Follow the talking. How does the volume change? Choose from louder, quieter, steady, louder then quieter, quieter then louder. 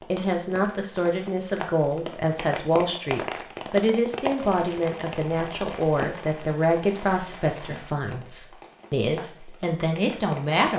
steady.